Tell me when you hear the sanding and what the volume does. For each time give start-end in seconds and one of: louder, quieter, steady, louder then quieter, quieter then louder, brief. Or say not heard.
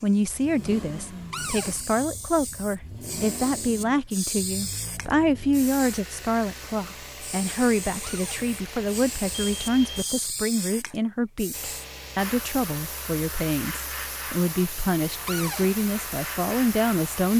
not heard.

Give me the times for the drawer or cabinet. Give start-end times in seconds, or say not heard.
1.3-1.8, 8.0-8.4, 15.2-15.7.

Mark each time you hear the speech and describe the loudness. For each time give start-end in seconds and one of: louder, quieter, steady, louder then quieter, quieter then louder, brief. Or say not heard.
0.0-17.3 steady.